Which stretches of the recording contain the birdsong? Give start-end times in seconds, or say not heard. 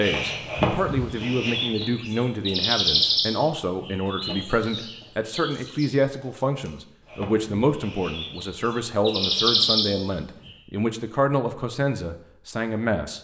0.0-10.5.